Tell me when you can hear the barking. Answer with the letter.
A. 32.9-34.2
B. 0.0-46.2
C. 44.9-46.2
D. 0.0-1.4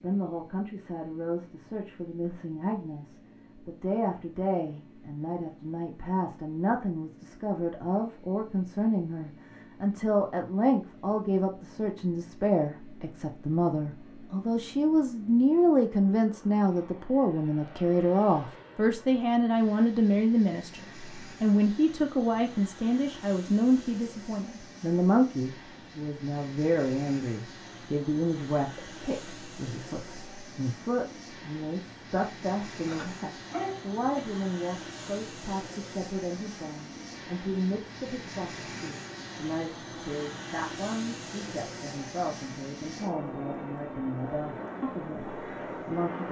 A.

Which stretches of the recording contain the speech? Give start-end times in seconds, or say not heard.
0.0-46.2.